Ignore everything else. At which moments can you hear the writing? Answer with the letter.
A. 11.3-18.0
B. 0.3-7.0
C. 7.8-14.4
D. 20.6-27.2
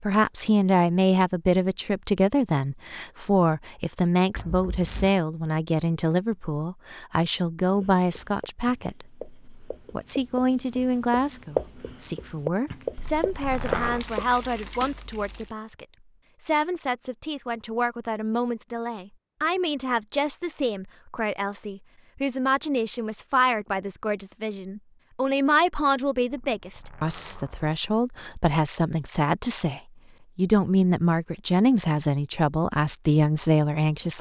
C.